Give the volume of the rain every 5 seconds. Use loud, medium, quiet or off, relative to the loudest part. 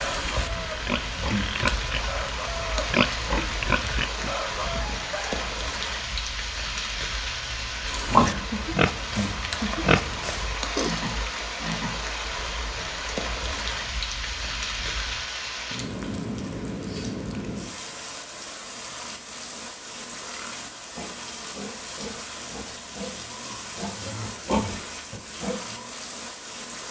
loud, loud, loud, loud, medium, medium.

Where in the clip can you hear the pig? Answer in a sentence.
You can hear the pig from 0.0 to 4.8 s, from 8.1 to 11.0 s and from 20.2 to 25.9 s.